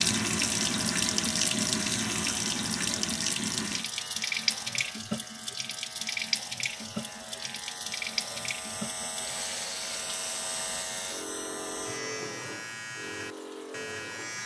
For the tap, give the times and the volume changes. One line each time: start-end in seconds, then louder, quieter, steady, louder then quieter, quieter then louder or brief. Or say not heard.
0.0-14.4 quieter.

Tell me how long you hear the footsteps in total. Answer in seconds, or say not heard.
not heard.